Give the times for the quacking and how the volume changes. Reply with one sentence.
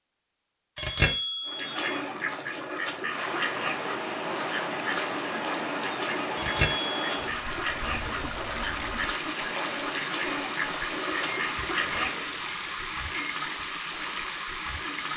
The quacking can be heard from 1.4 to 12.3 s, at a steady volume.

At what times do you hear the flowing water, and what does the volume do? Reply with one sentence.
The flowing water can be heard from 3.1 to 15.1 s, at a steady volume.